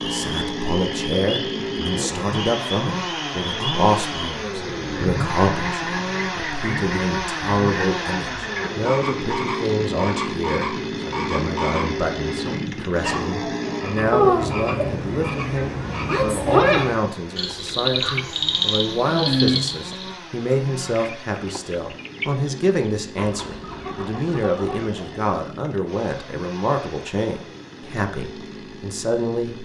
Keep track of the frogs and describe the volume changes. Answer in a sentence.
The volume of the frogs goes up.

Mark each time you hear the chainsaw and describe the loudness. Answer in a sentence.
The chainsaw can be heard from 0.0 to 29.6 s, getting quieter.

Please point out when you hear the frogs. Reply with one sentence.
You can hear the frogs from 0.0 to 20.1 s.